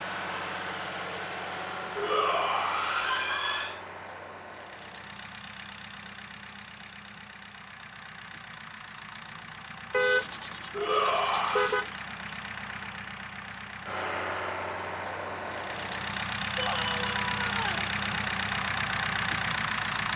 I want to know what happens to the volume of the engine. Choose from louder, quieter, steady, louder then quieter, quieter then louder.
quieter then louder.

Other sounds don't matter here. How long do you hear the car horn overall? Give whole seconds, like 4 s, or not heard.
2 s.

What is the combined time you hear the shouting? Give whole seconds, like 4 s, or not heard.
4 s.